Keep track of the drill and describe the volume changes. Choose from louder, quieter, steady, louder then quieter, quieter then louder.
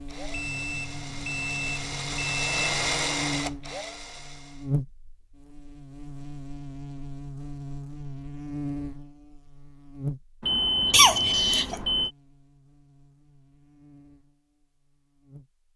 louder then quieter.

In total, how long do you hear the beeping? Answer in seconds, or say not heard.
4 s.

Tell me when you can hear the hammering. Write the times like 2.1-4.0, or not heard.
not heard.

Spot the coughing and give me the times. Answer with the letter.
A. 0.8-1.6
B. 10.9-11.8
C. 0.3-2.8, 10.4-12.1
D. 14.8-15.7
B.